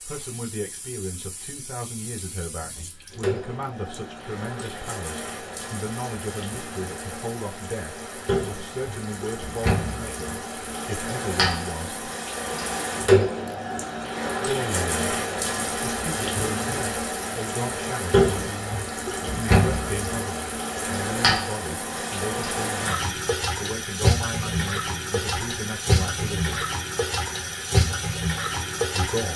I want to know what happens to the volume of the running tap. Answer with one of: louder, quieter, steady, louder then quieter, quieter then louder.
louder.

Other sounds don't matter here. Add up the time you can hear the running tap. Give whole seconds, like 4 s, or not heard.
29 s.